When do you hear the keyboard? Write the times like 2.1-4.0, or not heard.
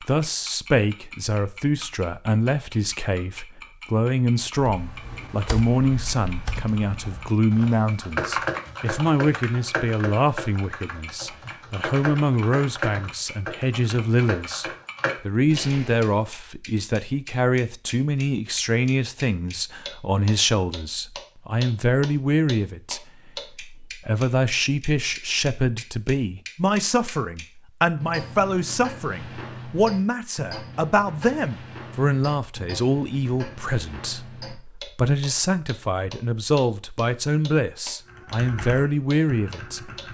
4.5-16.1, 38.0-40.0.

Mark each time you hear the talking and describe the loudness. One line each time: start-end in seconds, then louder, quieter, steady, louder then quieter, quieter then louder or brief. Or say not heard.
0.0-39.8 steady.